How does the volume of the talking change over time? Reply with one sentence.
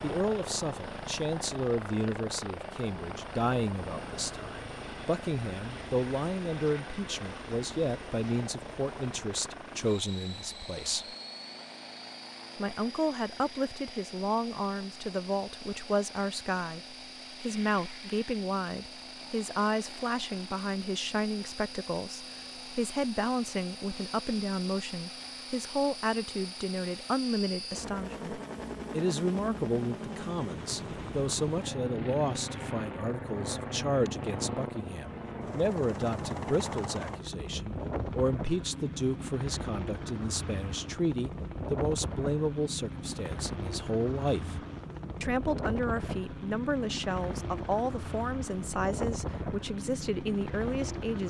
The volume of the talking stays about the same.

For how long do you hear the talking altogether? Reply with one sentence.
You can hear the talking for 49 seconds altogether.